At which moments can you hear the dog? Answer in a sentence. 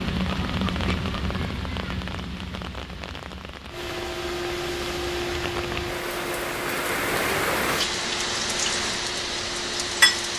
The dog can't be heard in this clip.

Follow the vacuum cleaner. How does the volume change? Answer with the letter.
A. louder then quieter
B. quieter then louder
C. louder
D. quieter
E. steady
D.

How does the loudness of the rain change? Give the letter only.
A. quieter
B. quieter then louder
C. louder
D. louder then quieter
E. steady
B.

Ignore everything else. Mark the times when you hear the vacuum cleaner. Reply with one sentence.
You can hear the vacuum cleaner from 3.7 to 10.1 s.